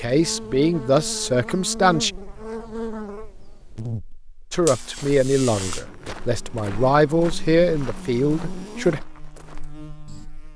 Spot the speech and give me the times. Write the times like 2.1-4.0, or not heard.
0.0-2.1, 4.5-9.0.